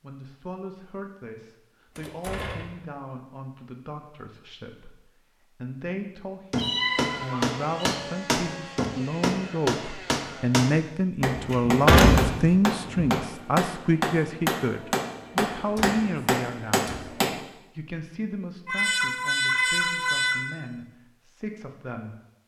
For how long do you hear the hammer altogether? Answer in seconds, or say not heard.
11 s.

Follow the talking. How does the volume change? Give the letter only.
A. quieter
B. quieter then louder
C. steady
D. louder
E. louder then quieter
E.